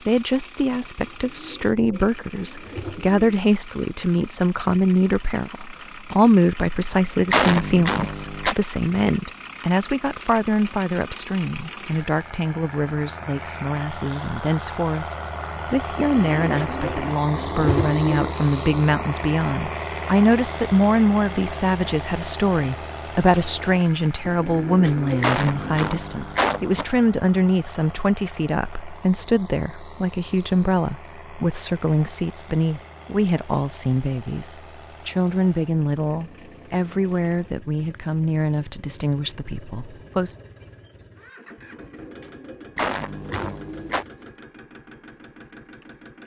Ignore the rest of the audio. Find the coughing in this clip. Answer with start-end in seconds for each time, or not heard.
7.3-8.6, 25.2-26.9, 42.8-44.0.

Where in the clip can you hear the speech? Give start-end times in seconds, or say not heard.
0.1-40.4.